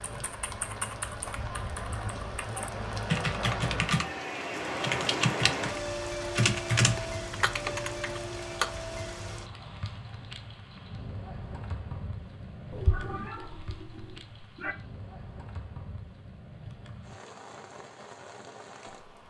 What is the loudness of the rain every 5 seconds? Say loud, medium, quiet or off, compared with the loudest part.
loud, loud, medium, medium.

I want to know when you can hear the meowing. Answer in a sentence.
You can hear the meowing from 12.7 to 14.8 s.